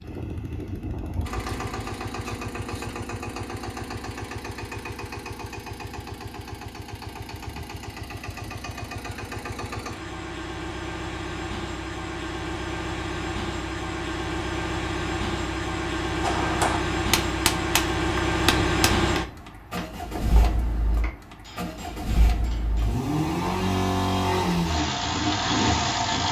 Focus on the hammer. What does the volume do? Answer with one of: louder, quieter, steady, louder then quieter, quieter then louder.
quieter.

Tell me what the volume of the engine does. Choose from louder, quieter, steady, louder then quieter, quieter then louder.
louder.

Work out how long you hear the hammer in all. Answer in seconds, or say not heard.
7 s.